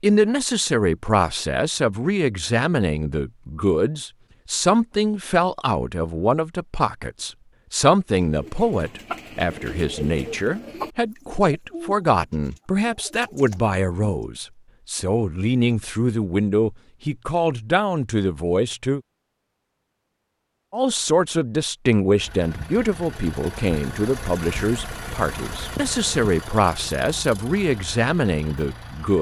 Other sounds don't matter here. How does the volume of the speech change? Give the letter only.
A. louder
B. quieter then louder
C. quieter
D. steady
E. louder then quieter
D.